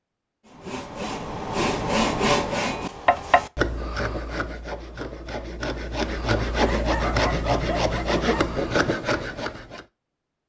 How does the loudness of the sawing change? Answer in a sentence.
The loudness of the sawing goes down, then up.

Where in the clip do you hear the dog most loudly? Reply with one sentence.
The volume of the dog peaks at 7 seconds.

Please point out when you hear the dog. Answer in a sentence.
The dog can be heard from 6.7 to 8.6 s.